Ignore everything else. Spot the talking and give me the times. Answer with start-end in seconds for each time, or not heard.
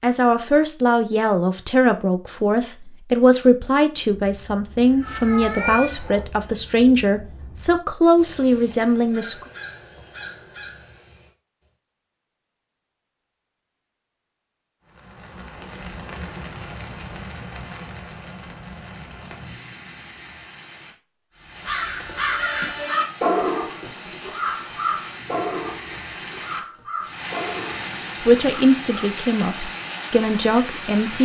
0.0-9.4, 28.2-31.2.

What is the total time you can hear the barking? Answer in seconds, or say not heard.
not heard.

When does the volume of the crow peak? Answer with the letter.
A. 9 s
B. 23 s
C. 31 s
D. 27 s
B.